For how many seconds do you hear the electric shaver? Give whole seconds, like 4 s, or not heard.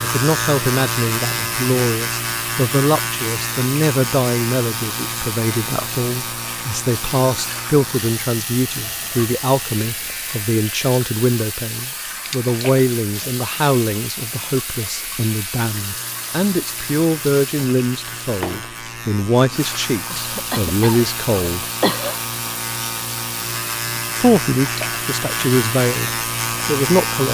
27 s.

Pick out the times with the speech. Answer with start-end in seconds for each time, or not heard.
0.0-21.6, 24.1-27.3.